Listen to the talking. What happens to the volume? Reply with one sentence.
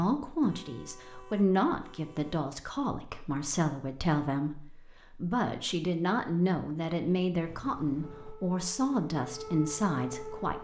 The loudness of the talking stays about the same.